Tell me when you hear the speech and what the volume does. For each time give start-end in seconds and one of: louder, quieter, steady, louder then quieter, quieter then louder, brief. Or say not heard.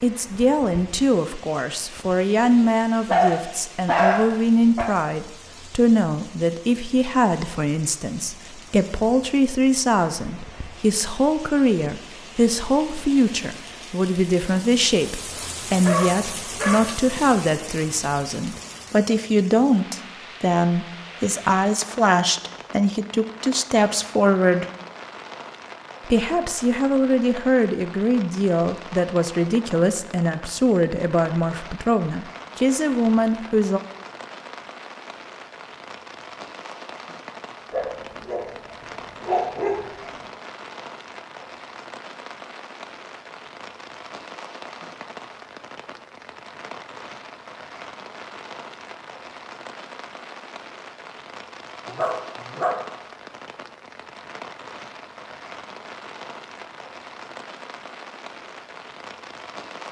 0.0-24.6 steady
26.1-33.8 steady.